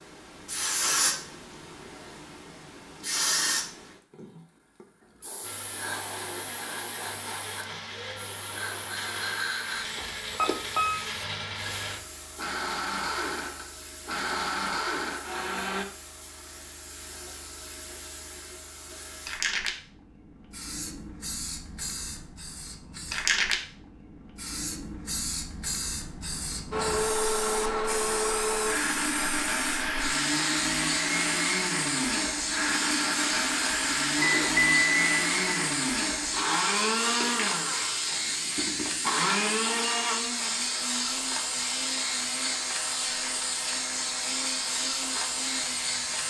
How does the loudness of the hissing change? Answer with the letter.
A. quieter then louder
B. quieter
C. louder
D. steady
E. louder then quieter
A.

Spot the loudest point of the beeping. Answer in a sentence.
The loudest moment of the beeping is at 35 seconds.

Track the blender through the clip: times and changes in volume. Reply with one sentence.
You can hear the blender from 5.4 to 15.8 s, getting louder; and from 26.7 to 46.2 s, getting quieter.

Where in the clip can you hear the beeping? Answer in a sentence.
You can hear the beeping from 9.9 to 11.0 s and from 34.1 to 35.6 s.